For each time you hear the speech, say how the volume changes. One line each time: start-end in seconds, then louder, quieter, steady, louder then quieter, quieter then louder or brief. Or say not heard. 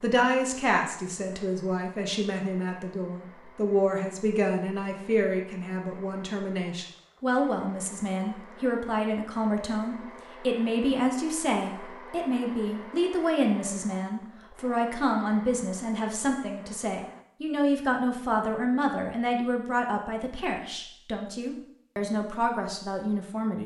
0.0-23.6 steady.